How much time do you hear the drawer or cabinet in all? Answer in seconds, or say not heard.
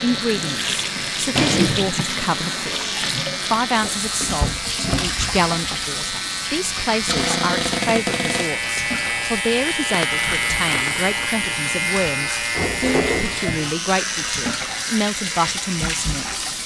3 s.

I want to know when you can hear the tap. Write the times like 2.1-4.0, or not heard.
0.0-16.6.